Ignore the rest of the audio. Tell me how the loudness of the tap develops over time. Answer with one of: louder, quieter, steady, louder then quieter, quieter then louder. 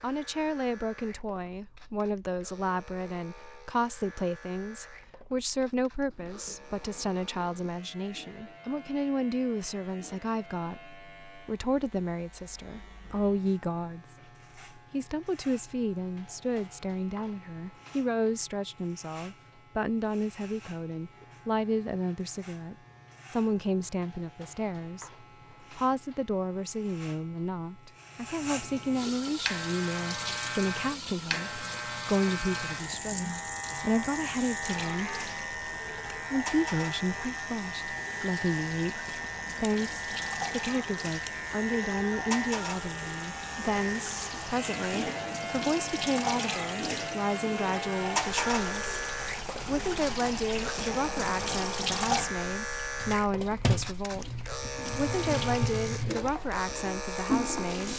louder.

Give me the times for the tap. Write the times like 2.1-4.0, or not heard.
28.9-57.9.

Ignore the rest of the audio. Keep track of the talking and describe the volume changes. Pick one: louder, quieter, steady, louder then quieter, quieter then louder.
steady.